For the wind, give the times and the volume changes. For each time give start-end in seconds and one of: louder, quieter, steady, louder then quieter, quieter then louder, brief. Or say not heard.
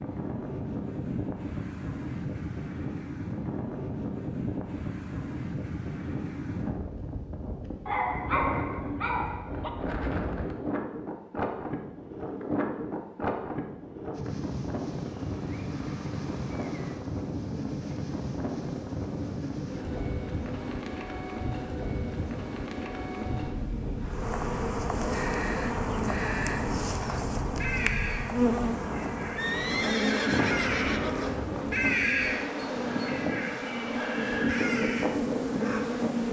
0.0-36.2 steady.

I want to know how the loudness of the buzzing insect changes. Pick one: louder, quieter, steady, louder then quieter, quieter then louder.
louder.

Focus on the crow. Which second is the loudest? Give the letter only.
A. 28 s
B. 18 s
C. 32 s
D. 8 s
C.